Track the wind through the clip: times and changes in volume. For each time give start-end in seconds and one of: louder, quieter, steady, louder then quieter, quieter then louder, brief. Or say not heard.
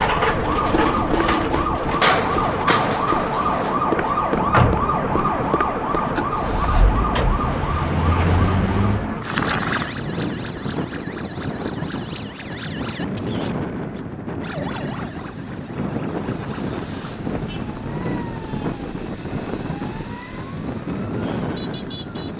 0.0-22.3 steady.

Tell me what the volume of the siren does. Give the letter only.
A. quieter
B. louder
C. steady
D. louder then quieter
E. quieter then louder
A.